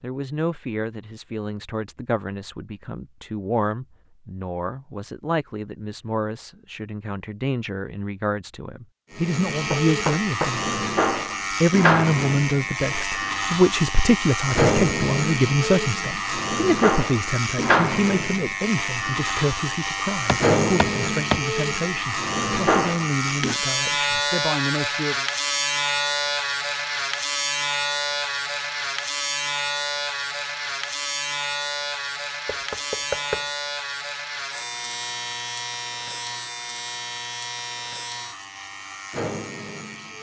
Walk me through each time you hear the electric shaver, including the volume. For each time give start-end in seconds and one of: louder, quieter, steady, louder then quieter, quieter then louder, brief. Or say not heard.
9.1-40.1 quieter.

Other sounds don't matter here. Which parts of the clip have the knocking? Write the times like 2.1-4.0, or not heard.
9.7-10.6, 20.2-21.4, 32.5-33.5.